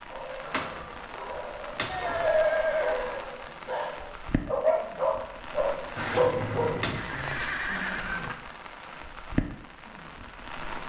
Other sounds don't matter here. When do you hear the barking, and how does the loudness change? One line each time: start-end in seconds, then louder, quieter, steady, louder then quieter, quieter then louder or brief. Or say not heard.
0.1-7.0 louder.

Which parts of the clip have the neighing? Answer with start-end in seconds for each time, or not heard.
1.9-3.1, 6.3-8.3.